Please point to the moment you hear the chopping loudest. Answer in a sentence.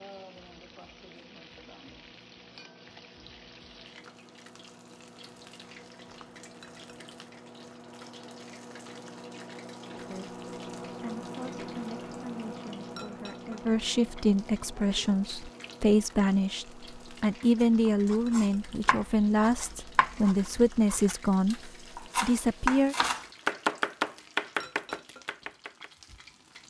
The volume of the chopping peaks at 24 seconds.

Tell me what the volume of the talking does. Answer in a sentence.
The loudness of the talking goes up.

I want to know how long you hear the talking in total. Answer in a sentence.
You can hear the talking for 13 seconds altogether.